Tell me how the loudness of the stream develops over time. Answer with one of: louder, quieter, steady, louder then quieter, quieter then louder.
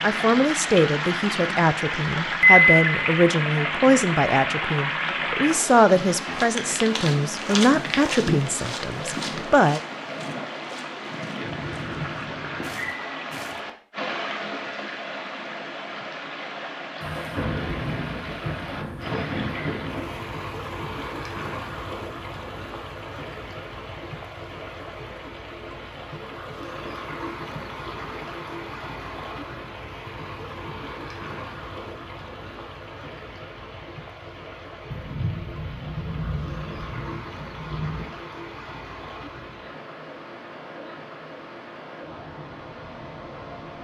quieter.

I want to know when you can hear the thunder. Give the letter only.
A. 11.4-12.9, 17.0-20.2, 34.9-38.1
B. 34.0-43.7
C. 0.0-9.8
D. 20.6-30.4
A.